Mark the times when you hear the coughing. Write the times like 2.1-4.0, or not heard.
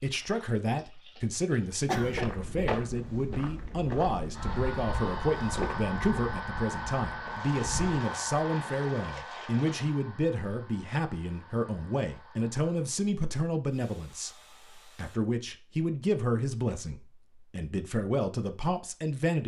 1.9-2.7.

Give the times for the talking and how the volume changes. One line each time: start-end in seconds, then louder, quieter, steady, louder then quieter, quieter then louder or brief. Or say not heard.
0.0-19.4 steady.